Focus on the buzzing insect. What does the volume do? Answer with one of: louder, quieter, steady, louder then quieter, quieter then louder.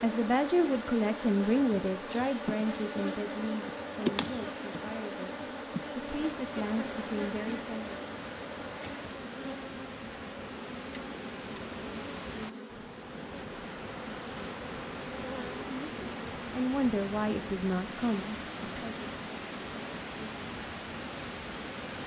quieter.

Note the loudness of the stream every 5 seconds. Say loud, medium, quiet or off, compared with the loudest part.
off, medium, loud, loud, loud.